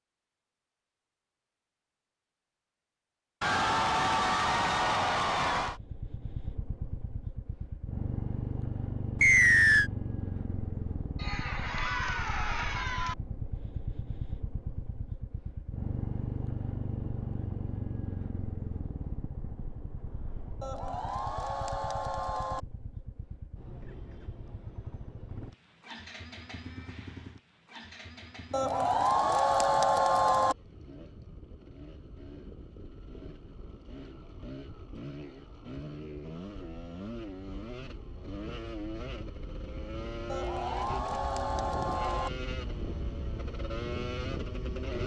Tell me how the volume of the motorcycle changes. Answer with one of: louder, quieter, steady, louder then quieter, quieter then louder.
quieter then louder.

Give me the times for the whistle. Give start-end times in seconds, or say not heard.
9.2-9.9.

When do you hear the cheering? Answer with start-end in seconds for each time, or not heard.
3.4-5.8, 11.2-13.2, 20.6-22.6, 28.5-30.6, 40.3-42.3.